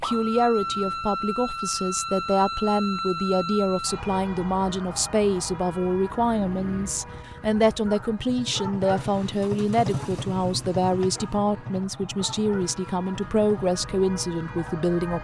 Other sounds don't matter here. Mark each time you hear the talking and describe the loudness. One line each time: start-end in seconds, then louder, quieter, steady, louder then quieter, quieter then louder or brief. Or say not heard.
0.0-15.1 steady.